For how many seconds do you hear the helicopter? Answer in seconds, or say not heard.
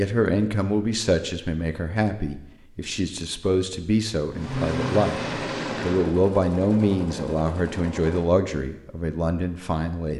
2 s.